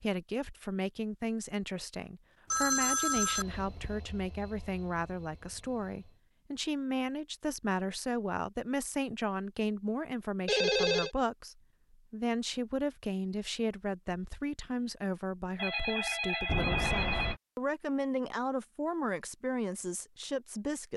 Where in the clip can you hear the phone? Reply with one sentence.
The phone can be heard from 2.5 to 4.0 s, from 10.4 to 11.1 s and from 15.6 to 17.4 s.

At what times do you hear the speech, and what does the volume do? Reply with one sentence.
The speech can be heard from 0.0 to 20.9 s, at a steady volume.